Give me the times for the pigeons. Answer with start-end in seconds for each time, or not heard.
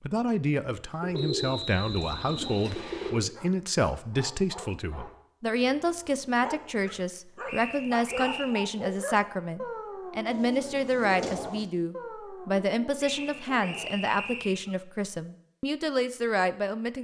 1.0-3.2, 10.2-11.7.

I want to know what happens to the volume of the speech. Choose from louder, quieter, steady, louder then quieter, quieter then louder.
steady.